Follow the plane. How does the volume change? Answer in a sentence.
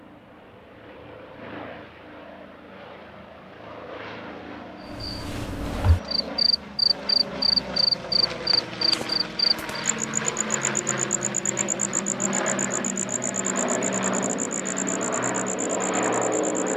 The loudness of the plane goes up.